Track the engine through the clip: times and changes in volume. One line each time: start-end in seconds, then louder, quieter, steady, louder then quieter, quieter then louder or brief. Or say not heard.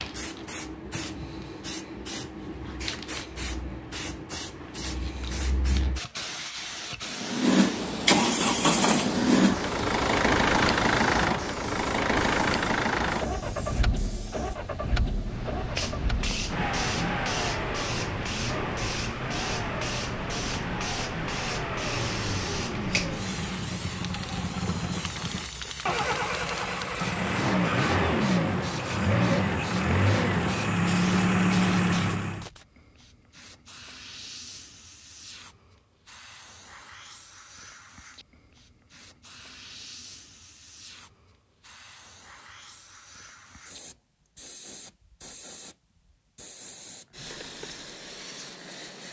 7.0-32.5 quieter then louder.